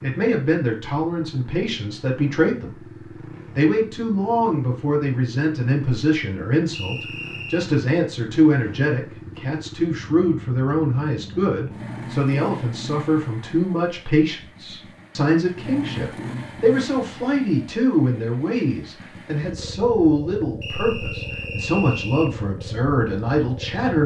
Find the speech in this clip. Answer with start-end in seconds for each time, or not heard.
0.0-2.9, 3.5-24.0.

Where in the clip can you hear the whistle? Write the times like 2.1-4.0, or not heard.
6.7-7.7, 20.6-22.3.